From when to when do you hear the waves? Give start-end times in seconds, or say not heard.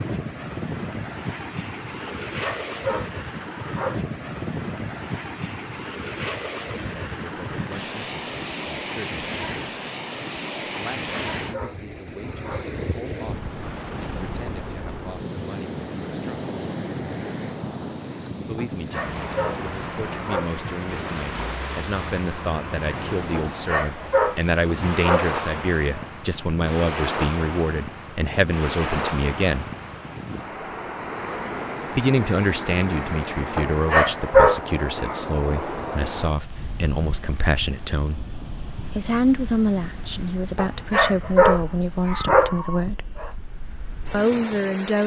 0.0-45.0.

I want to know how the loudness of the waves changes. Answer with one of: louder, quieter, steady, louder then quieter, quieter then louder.
quieter.